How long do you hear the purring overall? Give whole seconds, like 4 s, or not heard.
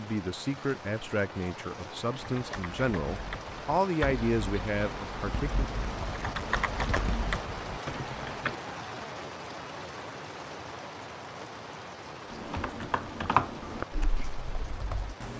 not heard.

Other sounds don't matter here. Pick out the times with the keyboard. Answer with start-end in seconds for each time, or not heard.
2.1-8.6, 12.3-15.3.